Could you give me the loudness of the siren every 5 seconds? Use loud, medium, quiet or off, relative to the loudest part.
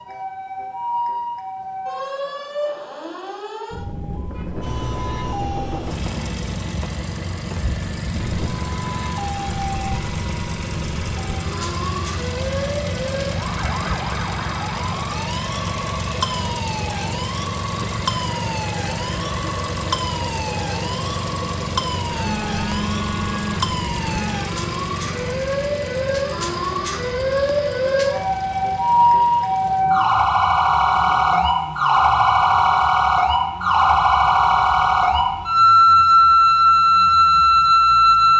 quiet, quiet, quiet, quiet, quiet, medium, loud, loud.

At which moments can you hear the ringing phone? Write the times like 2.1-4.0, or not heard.
22.1-24.4.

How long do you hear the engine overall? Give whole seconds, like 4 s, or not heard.
34 s.